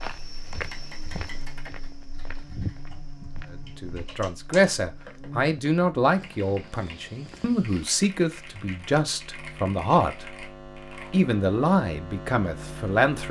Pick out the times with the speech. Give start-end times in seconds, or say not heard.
3.8-10.3, 11.1-13.2.